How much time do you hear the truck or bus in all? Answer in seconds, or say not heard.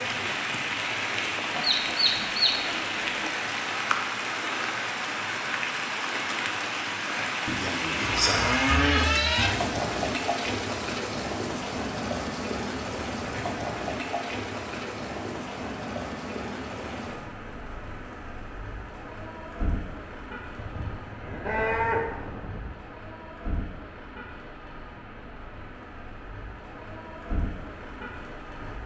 not heard.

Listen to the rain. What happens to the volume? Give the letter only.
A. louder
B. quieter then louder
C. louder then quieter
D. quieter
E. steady
D.